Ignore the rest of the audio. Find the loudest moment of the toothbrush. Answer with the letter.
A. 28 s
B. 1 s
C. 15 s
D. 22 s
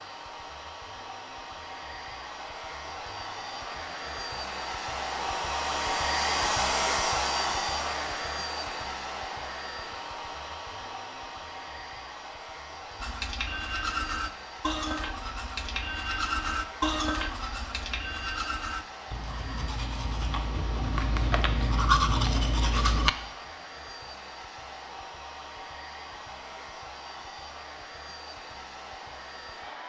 D.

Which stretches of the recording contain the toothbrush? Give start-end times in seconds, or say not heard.
13.0-23.1.